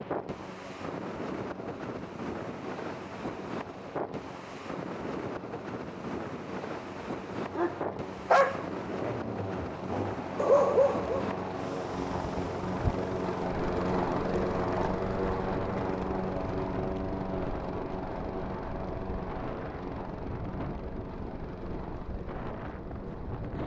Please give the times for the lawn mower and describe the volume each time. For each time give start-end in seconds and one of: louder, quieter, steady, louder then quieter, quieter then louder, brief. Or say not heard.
0.0-23.6 louder then quieter.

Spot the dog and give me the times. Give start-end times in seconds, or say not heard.
7.5-11.2.